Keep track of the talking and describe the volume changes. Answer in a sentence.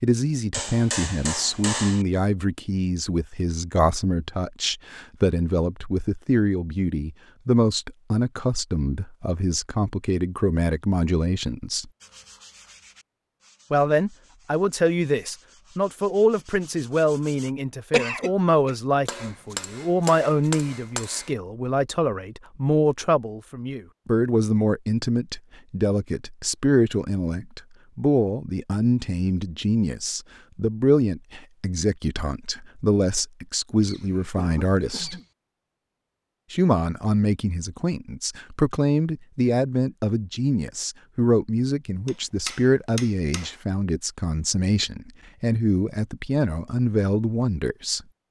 The volume of the talking stays about the same.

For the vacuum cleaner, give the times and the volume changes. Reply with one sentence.
The vacuum cleaner can't be heard in this clip.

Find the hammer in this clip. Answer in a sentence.
You can hear the hammer from 0.5 to 2.0 s, from 19.1 to 21.3 s and from 42.0 to 43.5 s.